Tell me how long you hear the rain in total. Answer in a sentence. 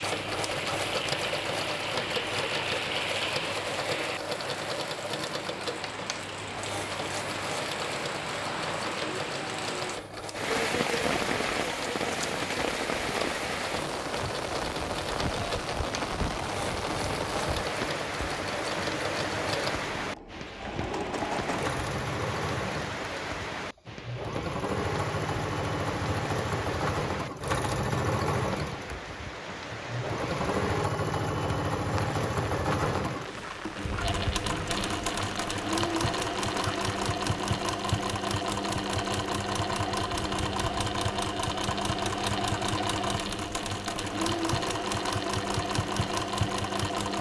You can hear the rain for 37 seconds altogether.